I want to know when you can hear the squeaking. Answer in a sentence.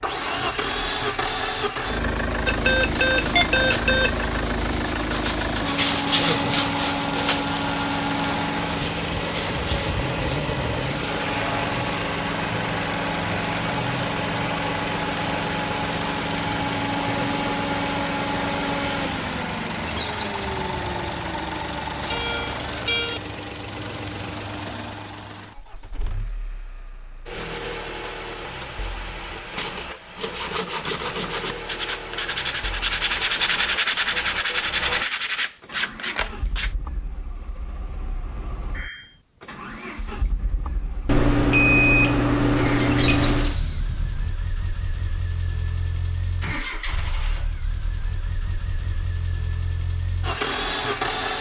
You can hear the squeaking from 19.8 to 21.3 s and from 42.8 to 44.4 s.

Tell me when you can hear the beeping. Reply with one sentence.
You can hear the beeping from 2.5 to 4.2 s, from 22.0 to 23.2 s and from 41.0 to 43.5 s.